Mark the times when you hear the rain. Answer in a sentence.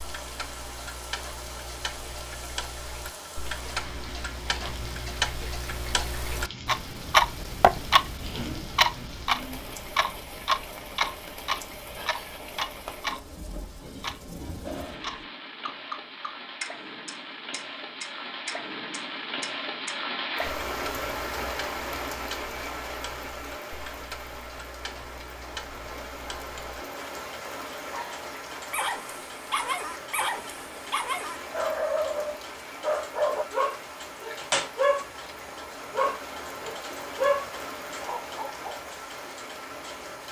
You can hear the rain from 0.0 to 40.2 s.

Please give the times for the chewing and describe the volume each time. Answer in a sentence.
You can't hear the chewing here.